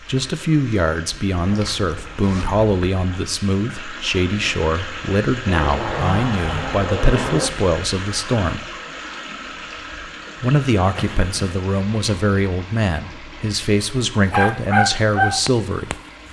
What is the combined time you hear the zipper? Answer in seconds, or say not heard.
4 s.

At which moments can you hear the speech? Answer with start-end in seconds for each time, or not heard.
0.1-8.7, 10.4-15.9.